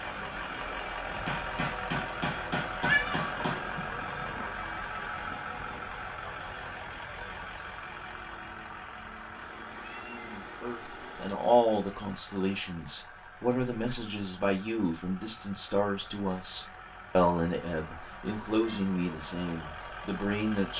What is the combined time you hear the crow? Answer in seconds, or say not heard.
not heard.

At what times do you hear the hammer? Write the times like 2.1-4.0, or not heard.
1.2-3.6.